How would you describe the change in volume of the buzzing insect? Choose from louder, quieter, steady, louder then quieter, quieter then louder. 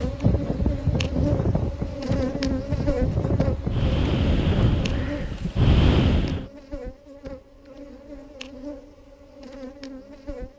quieter.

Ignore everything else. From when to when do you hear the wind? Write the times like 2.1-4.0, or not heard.
0.0-6.5.